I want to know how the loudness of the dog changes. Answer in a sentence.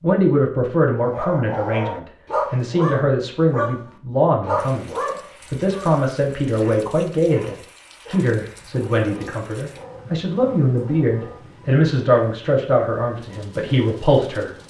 The loudness of the dog goes down.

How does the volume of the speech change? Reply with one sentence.
The loudness of the speech stays about the same.